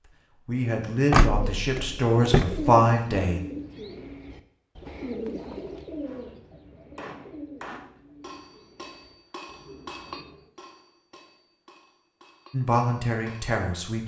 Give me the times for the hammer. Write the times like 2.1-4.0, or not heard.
6.0-13.6.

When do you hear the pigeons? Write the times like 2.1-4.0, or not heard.
1.3-10.5.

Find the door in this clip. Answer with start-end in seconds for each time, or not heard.
1.1-2.6.